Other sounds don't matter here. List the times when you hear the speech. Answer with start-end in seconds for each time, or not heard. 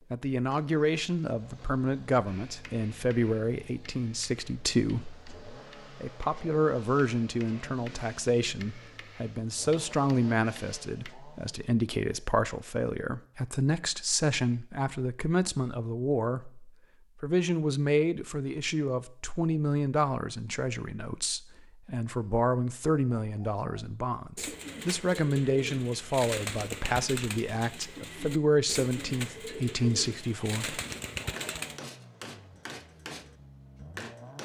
0.1-30.8.